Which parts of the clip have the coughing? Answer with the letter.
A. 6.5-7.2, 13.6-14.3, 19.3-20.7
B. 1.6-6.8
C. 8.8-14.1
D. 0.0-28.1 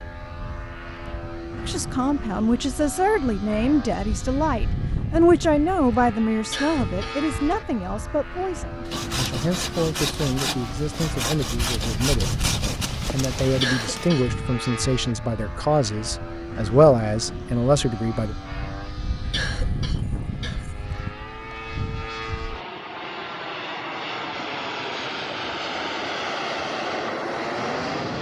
A.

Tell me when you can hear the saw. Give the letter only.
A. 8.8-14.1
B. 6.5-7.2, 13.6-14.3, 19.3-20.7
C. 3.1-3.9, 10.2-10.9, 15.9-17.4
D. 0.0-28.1
A.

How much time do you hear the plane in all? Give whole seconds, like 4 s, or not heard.
28 s.